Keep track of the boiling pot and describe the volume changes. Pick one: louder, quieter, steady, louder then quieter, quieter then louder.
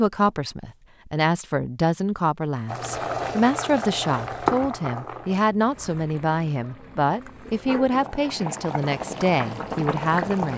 quieter then louder.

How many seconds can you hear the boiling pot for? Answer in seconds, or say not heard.
8 s.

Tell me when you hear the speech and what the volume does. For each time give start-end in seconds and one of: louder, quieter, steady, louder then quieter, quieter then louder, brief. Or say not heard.
0.0-10.5 steady.